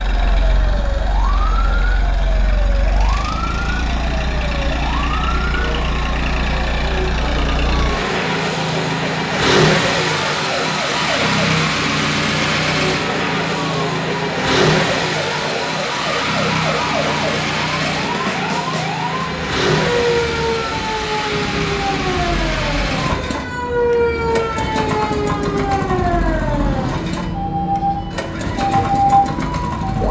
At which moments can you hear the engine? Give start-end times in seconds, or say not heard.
0.0-30.0.